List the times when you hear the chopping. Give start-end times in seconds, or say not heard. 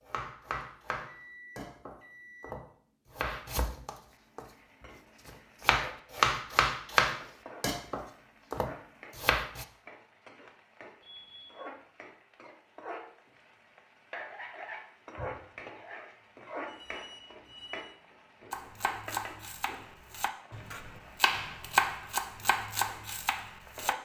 0.1-4.5, 5.2-9.7, 18.5-23.9.